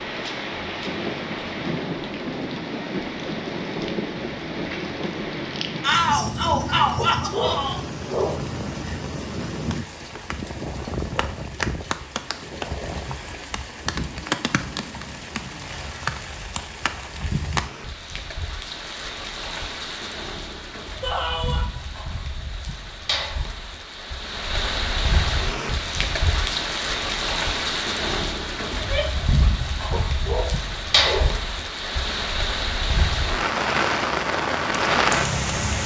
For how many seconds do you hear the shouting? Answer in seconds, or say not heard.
3 s.